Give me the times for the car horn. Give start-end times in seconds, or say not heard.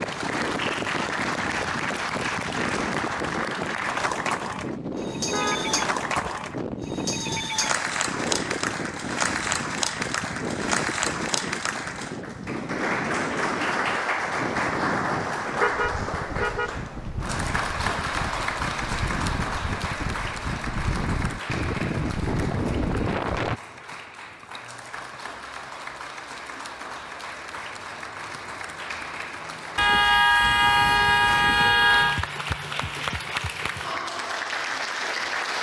5.2-6.3, 15.6-16.8, 29.8-32.2.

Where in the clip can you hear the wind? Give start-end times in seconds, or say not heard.
0.0-23.6.